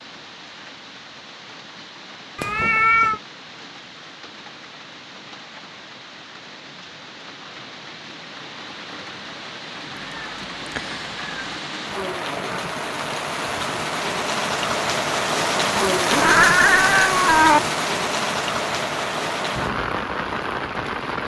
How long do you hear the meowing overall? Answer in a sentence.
You can hear the meowing for 4 seconds altogether.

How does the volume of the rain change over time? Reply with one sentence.
The loudness of the rain goes up.